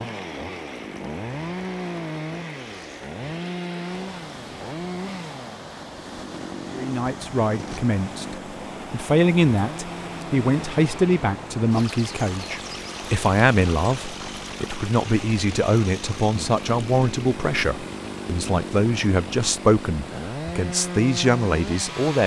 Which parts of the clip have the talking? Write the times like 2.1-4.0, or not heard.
6.7-22.2.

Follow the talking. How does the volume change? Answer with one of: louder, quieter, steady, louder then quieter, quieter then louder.
steady.